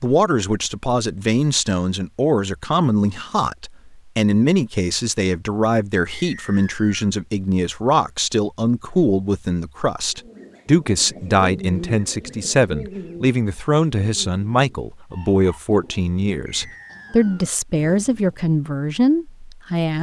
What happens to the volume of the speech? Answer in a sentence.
The volume of the speech stays about the same.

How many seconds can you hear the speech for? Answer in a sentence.
The speech can be heard for 20 seconds in total.